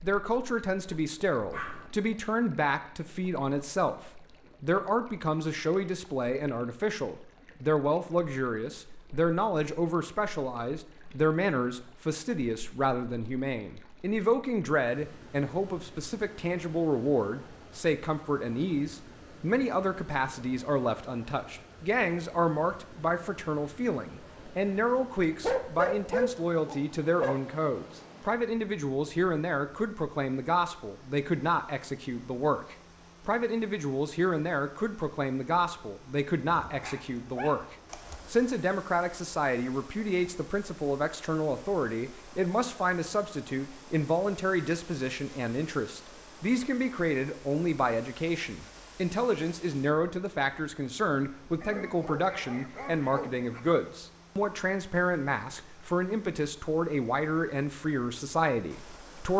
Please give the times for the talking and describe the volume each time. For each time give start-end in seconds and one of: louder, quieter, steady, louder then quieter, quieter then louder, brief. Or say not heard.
0.0-59.3 steady.